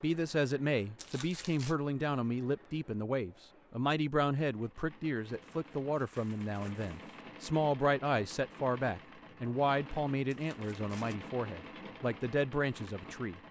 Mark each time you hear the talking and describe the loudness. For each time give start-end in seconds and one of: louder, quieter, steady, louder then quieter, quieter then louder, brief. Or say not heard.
0.0-13.4 steady.